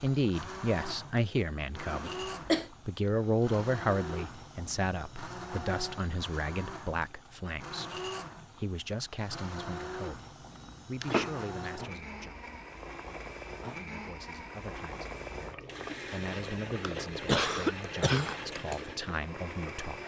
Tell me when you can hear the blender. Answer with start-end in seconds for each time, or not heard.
0.0-20.0.